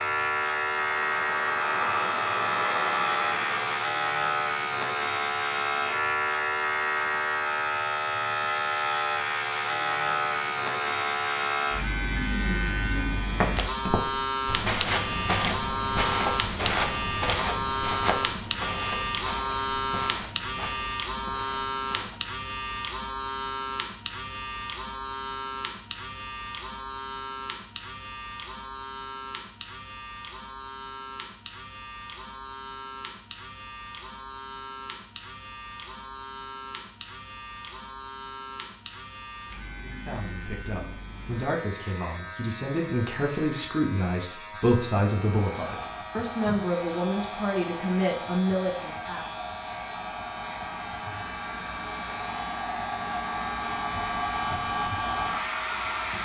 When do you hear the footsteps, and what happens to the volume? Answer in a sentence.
The footsteps can be heard from 13.2 to 22.2 s, getting quieter.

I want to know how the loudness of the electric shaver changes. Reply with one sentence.
The loudness of the electric shaver goes down.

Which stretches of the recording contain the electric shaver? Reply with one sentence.
You can hear the electric shaver from 0.0 to 56.2 s.